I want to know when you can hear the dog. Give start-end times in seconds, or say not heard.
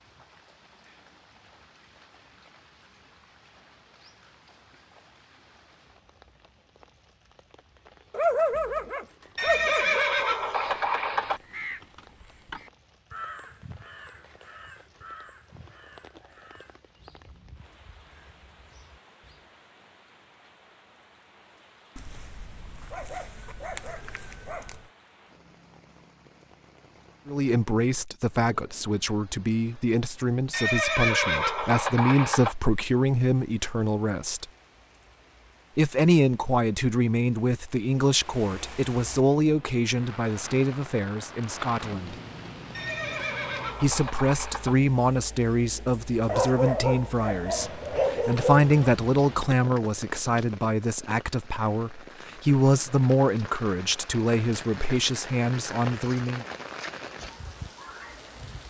8.1-10.1, 21.9-24.8, 46.2-48.7.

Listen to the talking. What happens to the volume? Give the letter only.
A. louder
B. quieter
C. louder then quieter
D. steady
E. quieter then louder
D.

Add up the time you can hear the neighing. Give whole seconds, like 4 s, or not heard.
6 s.